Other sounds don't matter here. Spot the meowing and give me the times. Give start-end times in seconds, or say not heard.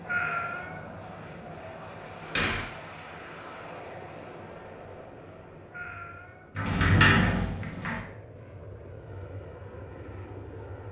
0.1-0.8, 5.7-6.5.